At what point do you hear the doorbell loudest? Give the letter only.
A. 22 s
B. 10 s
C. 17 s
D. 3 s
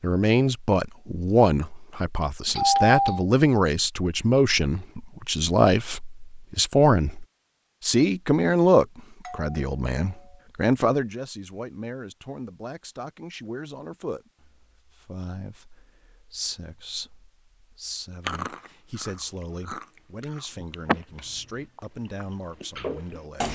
D.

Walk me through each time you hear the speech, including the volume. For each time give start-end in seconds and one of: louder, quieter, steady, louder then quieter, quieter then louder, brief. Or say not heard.
0.0-23.4 quieter.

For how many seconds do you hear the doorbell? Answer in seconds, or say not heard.
3 s.